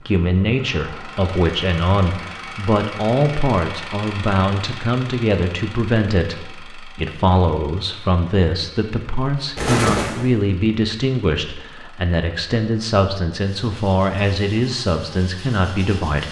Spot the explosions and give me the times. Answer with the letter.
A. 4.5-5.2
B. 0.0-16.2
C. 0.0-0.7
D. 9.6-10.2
D.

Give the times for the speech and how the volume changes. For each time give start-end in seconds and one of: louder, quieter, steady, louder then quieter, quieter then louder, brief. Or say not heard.
0.0-16.2 steady.